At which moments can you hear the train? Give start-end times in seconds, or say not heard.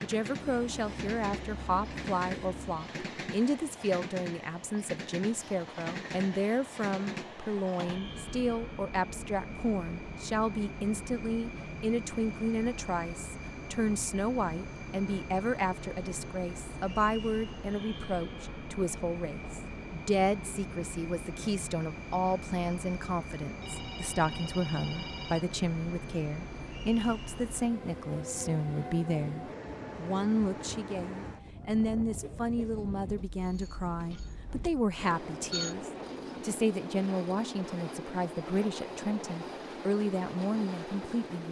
0.0-41.4.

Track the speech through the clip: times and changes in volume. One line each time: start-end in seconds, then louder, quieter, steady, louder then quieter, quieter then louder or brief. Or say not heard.
0.0-41.4 steady.